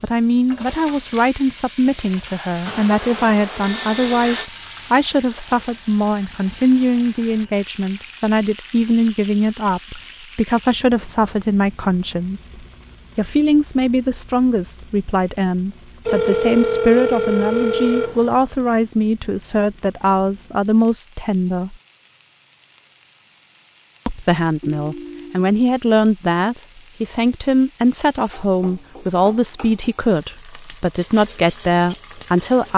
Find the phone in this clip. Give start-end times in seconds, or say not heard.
2.6-4.5, 16.1-18.4, 24.6-25.5.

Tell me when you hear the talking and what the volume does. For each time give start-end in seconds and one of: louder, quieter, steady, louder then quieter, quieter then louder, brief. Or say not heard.
0.0-21.8 steady
24.1-32.7 steady.